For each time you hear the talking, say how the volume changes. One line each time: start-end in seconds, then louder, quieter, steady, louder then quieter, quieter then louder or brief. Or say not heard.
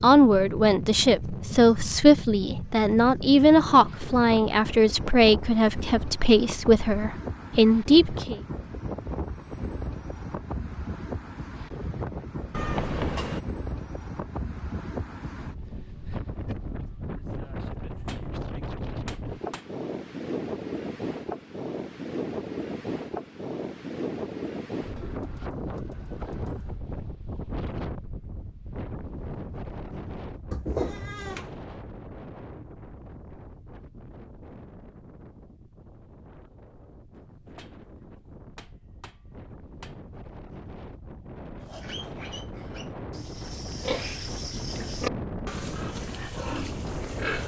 0.0-8.4 steady.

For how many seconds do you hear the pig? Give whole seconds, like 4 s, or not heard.
6 s.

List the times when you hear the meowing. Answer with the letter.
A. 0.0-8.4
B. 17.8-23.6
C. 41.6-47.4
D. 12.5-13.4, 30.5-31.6
D.